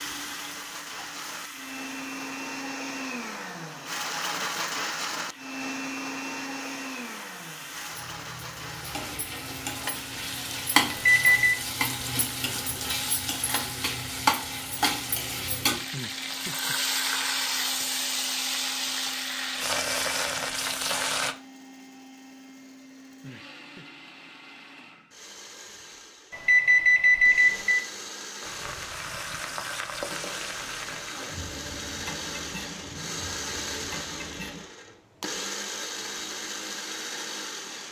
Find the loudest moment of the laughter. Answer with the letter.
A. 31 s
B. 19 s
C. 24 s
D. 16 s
D.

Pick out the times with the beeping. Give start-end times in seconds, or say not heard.
10.9-11.7, 26.3-27.9.